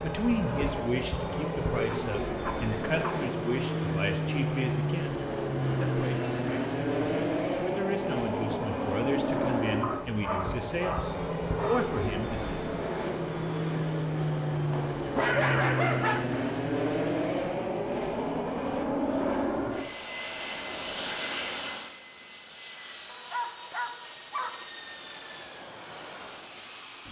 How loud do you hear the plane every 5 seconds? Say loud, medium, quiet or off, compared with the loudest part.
loud, loud, loud, loud, medium, quiet.